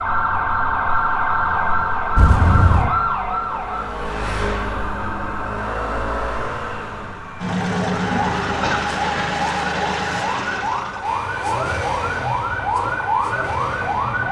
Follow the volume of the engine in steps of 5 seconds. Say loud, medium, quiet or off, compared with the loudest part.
medium, loud, loud.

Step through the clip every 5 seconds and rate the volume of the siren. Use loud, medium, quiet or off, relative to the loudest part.
loud, medium, loud.